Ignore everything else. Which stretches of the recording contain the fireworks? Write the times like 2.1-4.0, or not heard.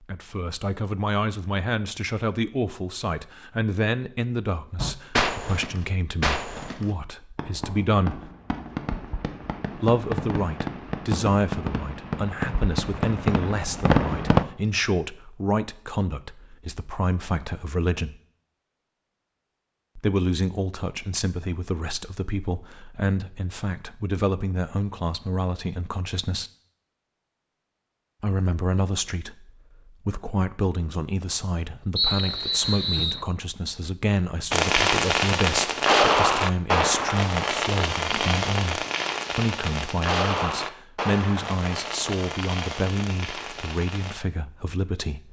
4.8-14.4, 34.5-44.1.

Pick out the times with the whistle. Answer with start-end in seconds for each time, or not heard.
31.9-33.2.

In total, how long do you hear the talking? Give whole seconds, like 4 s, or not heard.
40 s.